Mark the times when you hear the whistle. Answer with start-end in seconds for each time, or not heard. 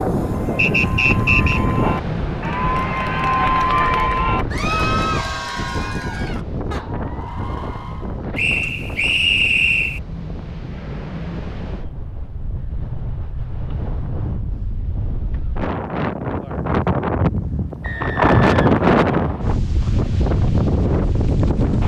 0.6-1.6, 8.3-10.0, 17.8-19.6.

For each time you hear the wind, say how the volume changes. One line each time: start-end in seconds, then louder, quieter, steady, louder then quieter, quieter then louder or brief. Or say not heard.
0.0-21.8 quieter then louder.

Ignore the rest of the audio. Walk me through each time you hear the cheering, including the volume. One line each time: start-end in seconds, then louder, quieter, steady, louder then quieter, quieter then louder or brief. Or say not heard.
0.2-8.2 louder then quieter.